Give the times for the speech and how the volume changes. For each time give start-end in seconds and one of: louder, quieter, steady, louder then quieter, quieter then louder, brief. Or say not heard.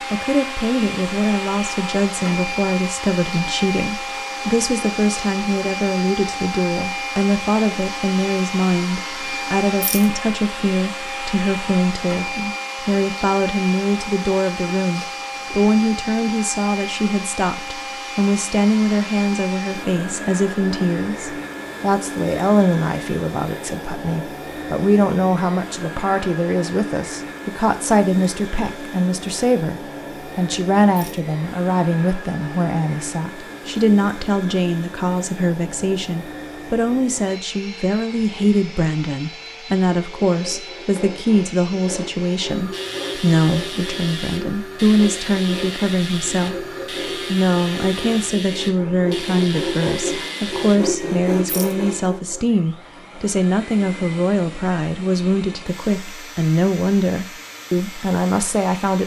0.1-46.6 steady
47.2-59.0 steady.